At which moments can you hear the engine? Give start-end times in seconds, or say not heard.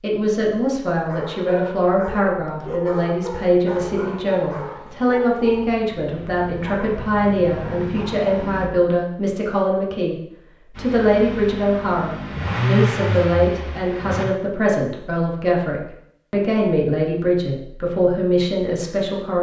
3.9-8.7, 10.8-14.3.